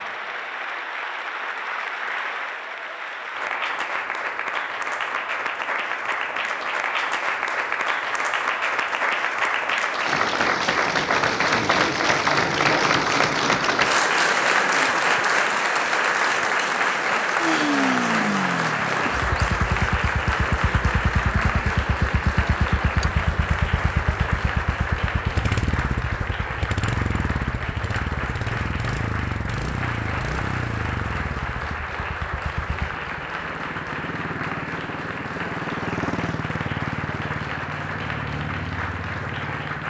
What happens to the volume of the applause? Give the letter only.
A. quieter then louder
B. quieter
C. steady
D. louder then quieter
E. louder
D.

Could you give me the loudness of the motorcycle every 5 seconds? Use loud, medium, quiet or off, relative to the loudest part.
off, off, off, loud, loud, loud, medium, medium.